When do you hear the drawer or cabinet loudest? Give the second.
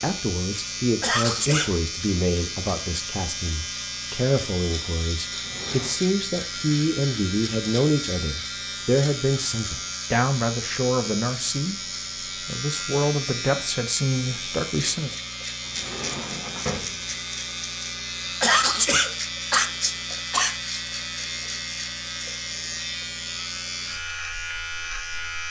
17 s.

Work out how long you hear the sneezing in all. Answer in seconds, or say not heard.
3 s.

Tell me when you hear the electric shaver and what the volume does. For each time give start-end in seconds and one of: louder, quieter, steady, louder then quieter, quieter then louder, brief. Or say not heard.
0.0-25.4 steady.